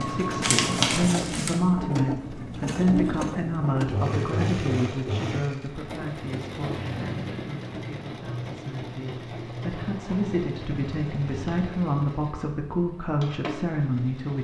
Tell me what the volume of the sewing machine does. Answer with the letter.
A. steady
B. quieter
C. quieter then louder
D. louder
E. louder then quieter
B.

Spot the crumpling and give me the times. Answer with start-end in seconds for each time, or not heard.
0.4-1.6.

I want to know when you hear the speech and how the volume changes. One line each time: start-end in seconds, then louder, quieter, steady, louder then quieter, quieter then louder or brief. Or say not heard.
0.0-14.3 quieter then louder.